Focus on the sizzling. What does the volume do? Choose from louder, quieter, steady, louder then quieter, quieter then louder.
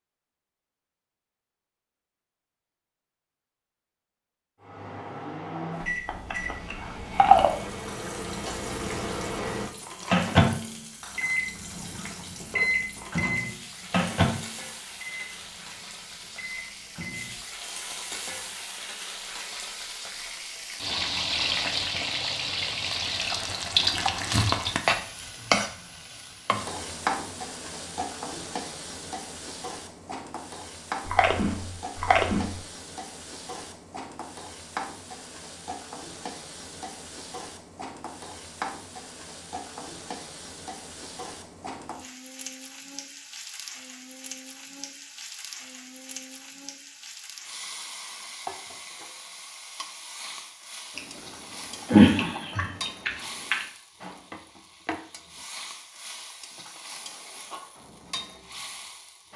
louder then quieter.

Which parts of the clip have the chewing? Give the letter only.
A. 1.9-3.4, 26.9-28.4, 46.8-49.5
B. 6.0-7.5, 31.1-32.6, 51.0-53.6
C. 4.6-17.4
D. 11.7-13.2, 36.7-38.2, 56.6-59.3
B.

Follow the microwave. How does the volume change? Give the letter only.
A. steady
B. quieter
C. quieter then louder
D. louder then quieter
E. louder
D.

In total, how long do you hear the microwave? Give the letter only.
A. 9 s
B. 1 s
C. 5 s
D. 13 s
D.